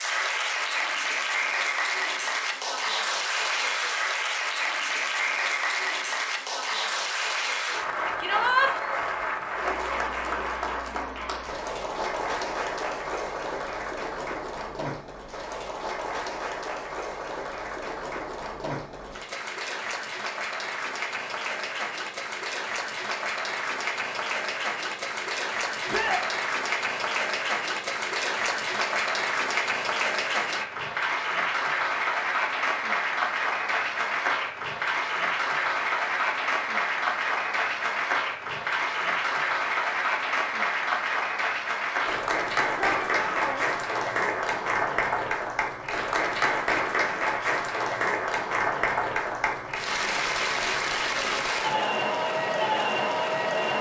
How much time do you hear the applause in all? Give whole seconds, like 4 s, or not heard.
54 s.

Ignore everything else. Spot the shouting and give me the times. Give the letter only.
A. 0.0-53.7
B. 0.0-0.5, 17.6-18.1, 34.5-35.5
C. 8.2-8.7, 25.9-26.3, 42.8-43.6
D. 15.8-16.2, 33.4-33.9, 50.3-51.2
C.